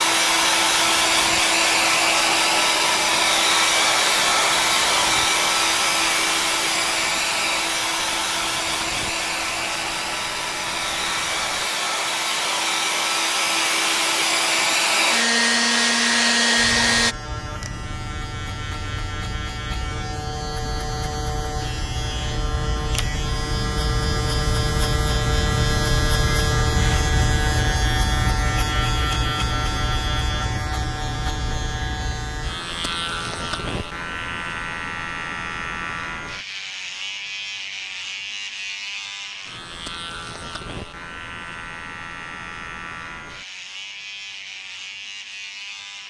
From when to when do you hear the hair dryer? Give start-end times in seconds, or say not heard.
0.0-17.1.